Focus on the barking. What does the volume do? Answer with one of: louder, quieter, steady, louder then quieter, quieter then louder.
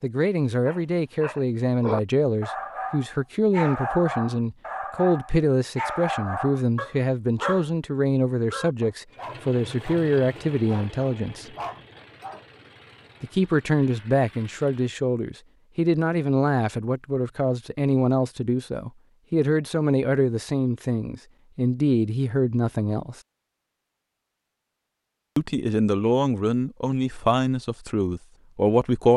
quieter.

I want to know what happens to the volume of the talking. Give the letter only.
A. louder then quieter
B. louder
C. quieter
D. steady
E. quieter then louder
D.